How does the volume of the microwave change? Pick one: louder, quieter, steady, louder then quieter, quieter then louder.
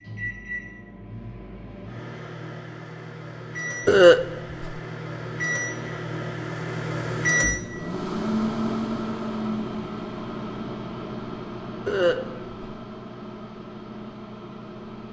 louder then quieter.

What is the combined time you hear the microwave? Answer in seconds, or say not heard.
15 s.